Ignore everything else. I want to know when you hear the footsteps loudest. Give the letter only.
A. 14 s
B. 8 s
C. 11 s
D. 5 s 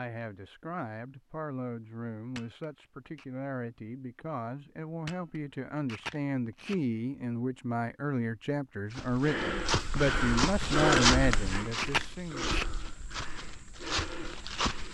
C.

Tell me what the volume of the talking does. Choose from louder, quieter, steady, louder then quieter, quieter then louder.
louder.